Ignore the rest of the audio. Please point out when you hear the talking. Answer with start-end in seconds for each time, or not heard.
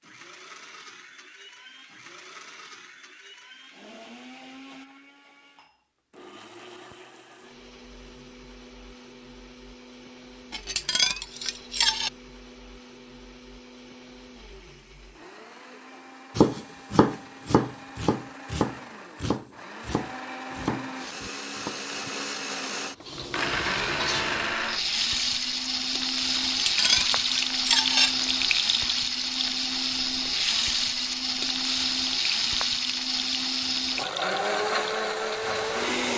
not heard.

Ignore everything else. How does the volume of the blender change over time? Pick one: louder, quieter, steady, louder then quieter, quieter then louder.
louder.